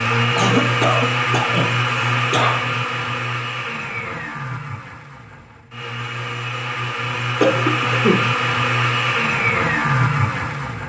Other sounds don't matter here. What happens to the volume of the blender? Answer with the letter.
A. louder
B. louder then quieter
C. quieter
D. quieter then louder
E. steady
D.